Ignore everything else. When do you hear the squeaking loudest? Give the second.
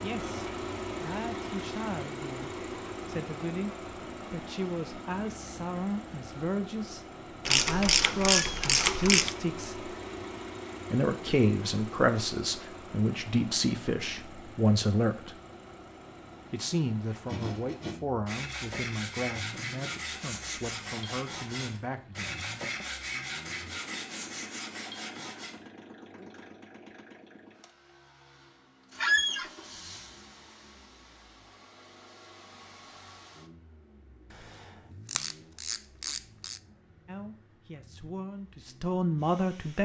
29 s.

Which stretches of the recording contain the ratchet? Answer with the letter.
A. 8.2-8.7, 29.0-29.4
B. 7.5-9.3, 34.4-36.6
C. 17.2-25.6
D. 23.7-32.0
B.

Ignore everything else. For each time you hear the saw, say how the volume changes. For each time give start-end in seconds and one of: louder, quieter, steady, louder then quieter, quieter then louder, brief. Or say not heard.
17.2-25.6 steady.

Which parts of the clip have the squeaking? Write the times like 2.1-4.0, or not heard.
8.2-8.7, 29.0-29.4.